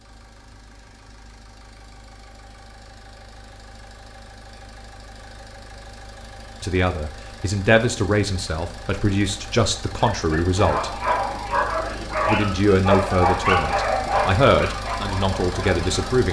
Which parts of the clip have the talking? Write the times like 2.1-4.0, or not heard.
6.6-10.9, 12.2-16.2.